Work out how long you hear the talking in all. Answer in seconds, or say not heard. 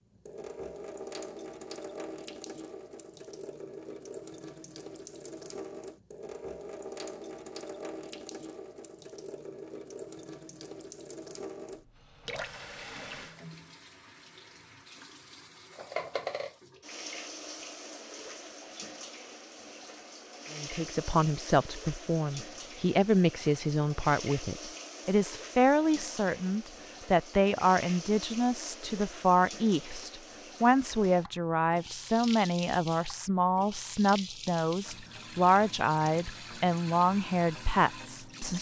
18 s.